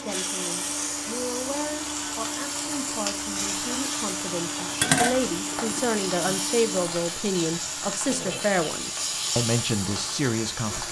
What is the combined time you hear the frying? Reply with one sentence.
The frying can be heard for 11 seconds in total.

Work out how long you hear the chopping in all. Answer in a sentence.
You can't hear the chopping here.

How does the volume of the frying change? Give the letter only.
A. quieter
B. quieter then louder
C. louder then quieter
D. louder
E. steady
E.